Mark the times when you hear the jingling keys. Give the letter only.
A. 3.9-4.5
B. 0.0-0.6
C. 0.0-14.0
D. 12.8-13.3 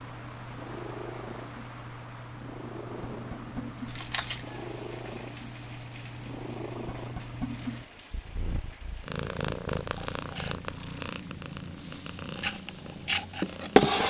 A.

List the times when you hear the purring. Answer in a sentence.
The purring can be heard from 0.0 to 14.0 s.